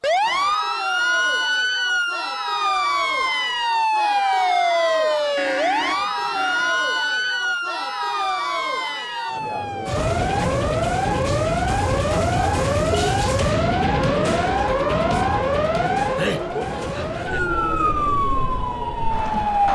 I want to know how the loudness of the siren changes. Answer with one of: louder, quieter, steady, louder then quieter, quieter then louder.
steady.